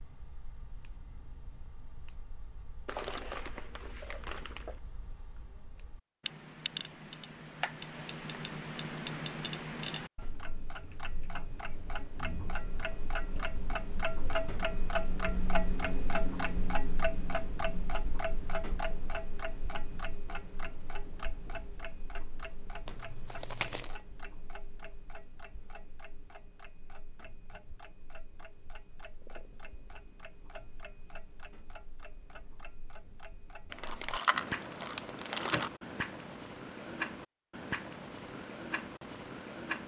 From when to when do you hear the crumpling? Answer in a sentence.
You can hear the crumpling from 2.9 to 4.8 s, from 22.9 to 23.9 s and from 33.7 to 35.7 s.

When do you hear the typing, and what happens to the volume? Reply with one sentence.
The typing can't be heard in this clip.